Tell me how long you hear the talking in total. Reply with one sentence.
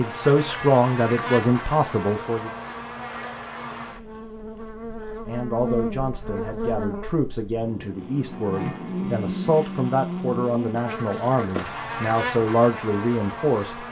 The talking can be heard for 11 seconds in total.